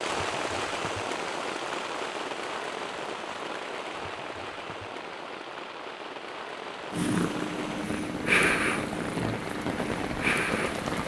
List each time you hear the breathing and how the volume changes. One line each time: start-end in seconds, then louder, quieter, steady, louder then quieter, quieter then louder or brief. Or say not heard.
not heard.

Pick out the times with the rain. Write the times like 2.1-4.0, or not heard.
0.0-11.0.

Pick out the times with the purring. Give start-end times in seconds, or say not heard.
6.9-11.0.